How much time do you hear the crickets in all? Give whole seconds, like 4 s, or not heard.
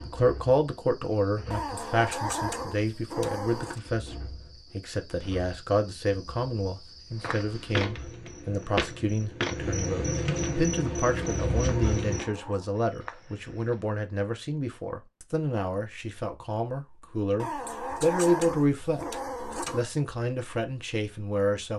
12 s.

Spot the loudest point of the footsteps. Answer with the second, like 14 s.
9 s.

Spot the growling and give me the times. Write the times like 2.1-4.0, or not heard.
1.5-3.8, 11.7-12.7, 17.4-19.9.